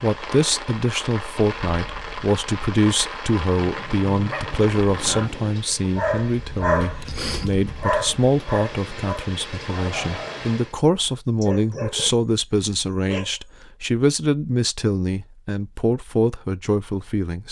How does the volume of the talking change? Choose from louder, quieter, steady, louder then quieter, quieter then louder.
steady.